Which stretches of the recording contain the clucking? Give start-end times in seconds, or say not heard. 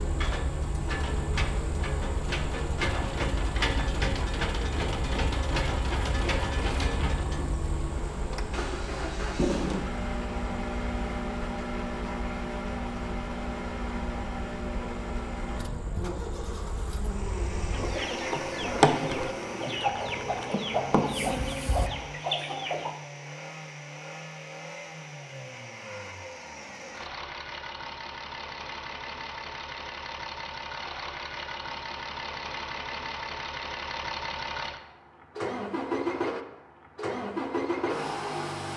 17.7-22.9.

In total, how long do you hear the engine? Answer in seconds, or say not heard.
39 s.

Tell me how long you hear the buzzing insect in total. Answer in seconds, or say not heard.
22 s.